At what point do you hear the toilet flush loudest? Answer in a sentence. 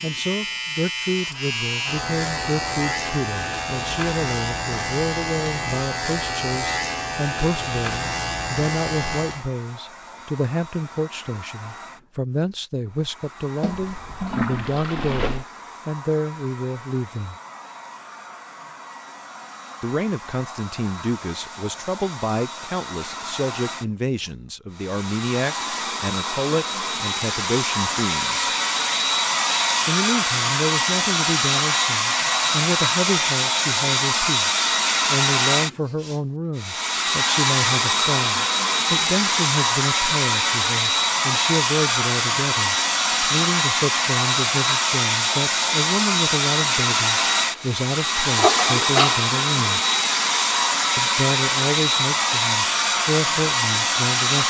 The loudest moment of the toilet flush is at 49 seconds.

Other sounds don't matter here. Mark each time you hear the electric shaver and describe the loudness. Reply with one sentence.
You can hear the electric shaver from 0.0 to 9.4 s, at a steady volume.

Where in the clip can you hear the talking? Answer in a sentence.
The talking can be heard from 0.0 to 17.4 s, from 19.8 to 28.5 s, from 29.9 to 49.8 s and from 51.0 to 54.4 s.